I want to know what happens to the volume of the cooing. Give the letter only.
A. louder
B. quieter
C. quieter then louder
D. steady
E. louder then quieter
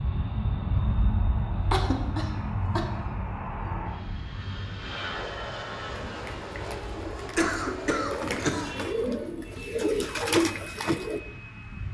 A.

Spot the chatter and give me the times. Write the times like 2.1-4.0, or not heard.
not heard.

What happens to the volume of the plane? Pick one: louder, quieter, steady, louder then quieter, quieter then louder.
louder then quieter.